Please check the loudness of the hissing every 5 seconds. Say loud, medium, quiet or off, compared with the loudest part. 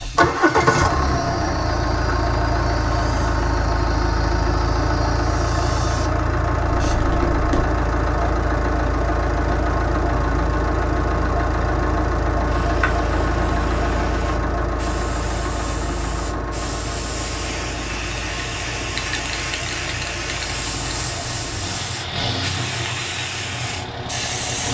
medium, medium, medium, loud, loud.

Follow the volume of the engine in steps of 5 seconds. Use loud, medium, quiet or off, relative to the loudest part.
loud, loud, loud, medium, medium.